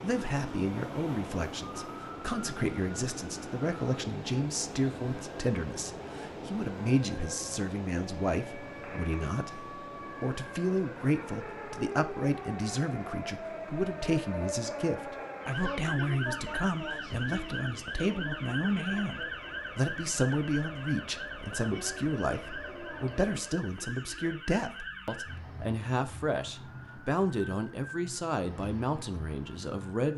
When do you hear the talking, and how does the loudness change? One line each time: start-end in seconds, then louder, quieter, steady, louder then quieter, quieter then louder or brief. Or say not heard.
0.0-30.1 steady.